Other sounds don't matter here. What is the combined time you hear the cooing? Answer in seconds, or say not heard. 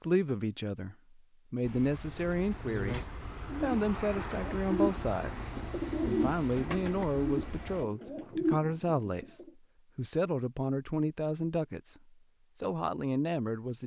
7 s.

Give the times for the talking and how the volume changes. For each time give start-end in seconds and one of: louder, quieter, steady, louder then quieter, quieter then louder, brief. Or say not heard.
0.0-11.9 steady
12.6-13.8 brief.